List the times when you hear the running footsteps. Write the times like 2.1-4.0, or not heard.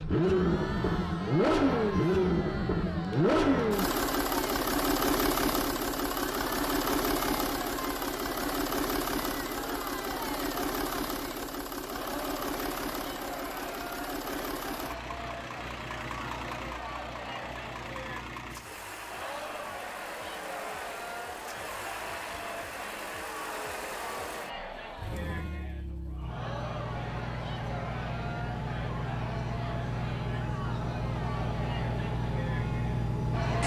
not heard.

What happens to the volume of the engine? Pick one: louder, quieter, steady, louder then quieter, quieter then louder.
quieter then louder.